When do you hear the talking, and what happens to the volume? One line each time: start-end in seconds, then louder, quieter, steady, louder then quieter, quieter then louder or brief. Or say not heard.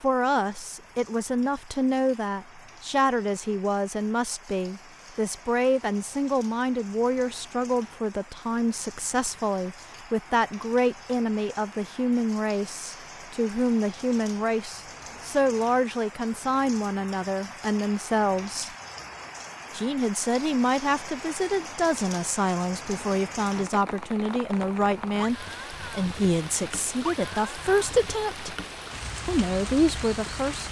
0.0-18.7 steady
19.7-28.6 steady
29.2-30.6 brief.